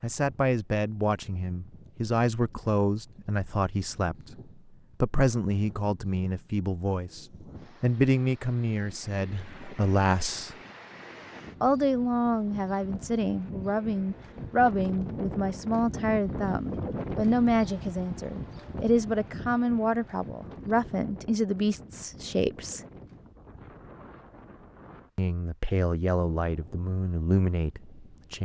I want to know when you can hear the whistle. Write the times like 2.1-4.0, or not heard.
not heard.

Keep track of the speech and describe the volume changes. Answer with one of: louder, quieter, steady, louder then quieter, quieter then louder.
steady.